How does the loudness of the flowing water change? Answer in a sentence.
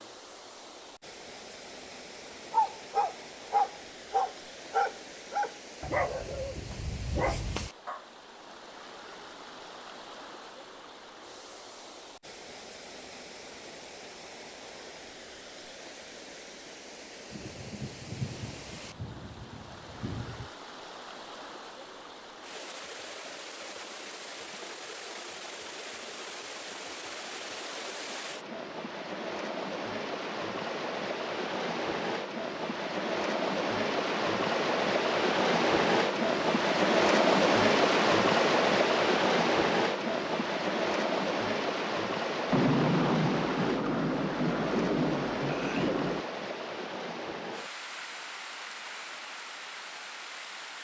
The volume of the flowing water goes up, then down.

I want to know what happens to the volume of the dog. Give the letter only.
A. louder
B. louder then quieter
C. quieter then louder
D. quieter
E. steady
D.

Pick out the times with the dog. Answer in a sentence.
You can hear the dog from 2.5 to 8.1 s.